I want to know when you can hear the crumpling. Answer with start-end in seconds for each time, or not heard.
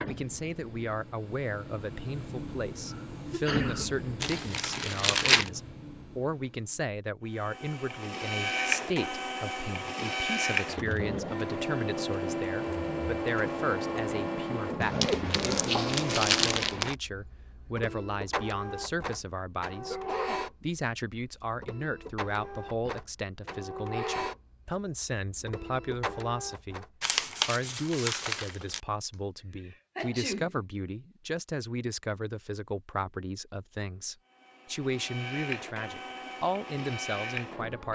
4.2-5.5, 14.8-16.9, 27.0-28.8.